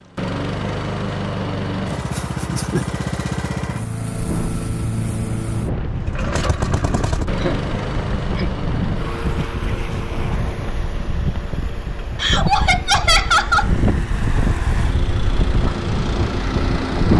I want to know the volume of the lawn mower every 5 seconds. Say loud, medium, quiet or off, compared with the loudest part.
loud, loud, medium, loud.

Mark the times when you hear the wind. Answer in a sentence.
The wind can be heard from 4.0 to 17.1 s.